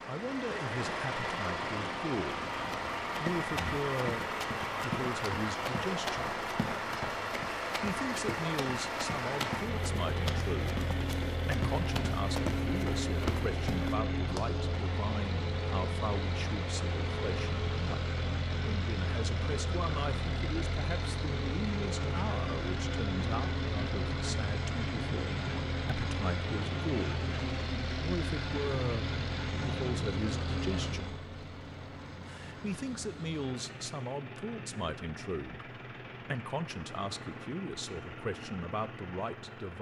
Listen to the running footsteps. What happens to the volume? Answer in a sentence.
The loudness of the running footsteps stays about the same.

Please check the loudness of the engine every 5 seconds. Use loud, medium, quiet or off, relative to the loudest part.
loud, loud, loud, loud, loud, loud, medium, medium.